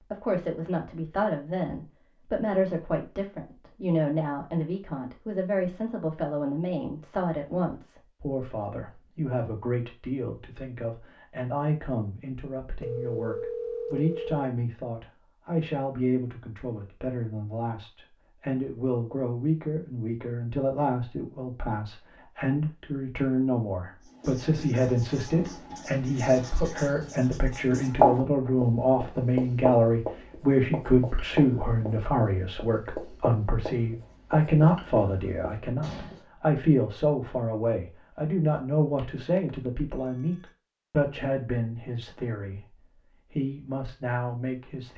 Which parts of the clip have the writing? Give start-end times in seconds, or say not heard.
24.0-36.2.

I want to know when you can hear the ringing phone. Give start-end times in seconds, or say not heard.
12.8-14.4, 39.0-40.5.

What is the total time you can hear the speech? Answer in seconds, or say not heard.
45 s.